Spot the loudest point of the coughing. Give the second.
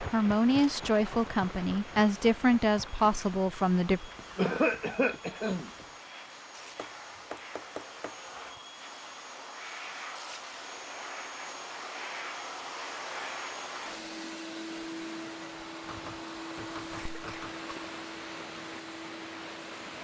5 s.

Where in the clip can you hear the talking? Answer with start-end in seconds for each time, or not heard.
0.1-4.0.